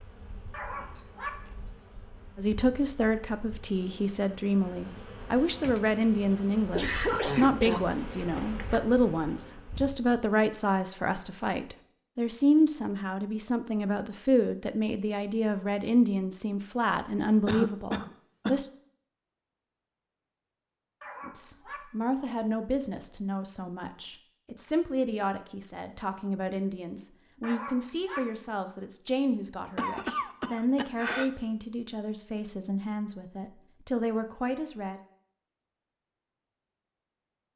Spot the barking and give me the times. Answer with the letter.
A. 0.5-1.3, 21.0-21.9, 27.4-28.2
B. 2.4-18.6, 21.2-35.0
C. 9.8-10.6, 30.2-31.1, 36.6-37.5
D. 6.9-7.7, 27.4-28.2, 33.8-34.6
A.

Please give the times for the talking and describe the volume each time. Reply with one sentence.
The talking can be heard from 2.4 to 18.6 s, at a steady volume; and from 21.2 to 35.0 s, at a steady volume.